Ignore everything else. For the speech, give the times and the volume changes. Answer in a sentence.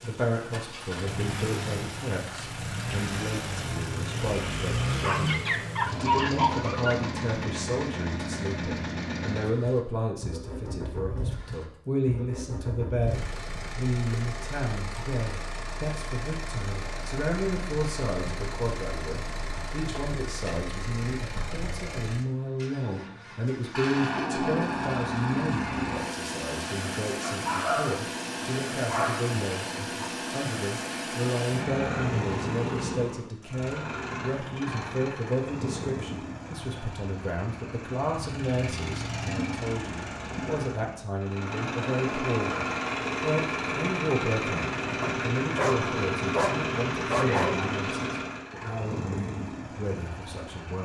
You can hear the speech from 0.0 to 50.8 s, at a steady volume.